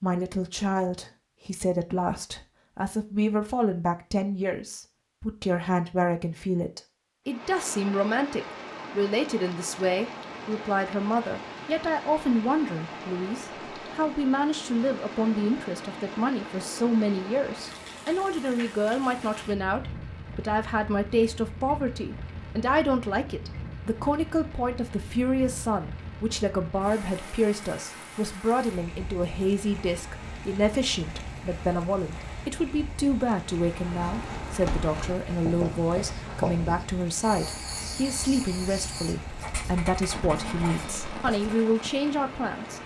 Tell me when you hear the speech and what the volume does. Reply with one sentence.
The speech can be heard from 0.0 to 42.8 s, at a steady volume.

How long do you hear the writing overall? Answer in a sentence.
The writing can be heard for 8 seconds in total.